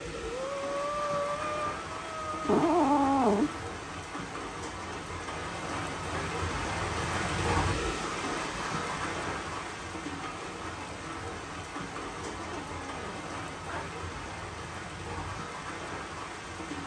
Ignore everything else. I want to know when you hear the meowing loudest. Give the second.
3 s.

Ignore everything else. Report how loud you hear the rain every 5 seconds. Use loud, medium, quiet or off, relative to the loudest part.
medium, loud, medium, medium.